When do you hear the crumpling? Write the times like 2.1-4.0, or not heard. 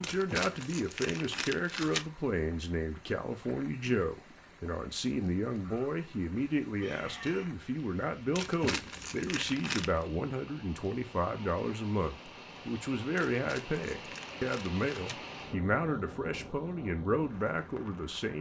0.0-2.0, 8.3-10.1, 13.2-15.2.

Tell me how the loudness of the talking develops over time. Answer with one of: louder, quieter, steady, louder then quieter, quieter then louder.
steady.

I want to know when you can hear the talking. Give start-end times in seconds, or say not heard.
0.0-18.3.